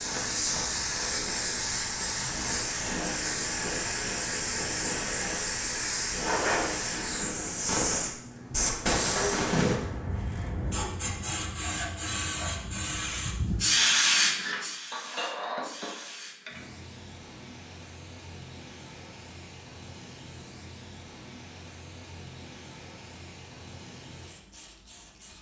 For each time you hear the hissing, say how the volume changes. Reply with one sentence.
The hissing can be heard from 0.0 to 25.3 s, getting quieter.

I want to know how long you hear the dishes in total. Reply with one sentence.
You can hear the dishes for 3 seconds altogether.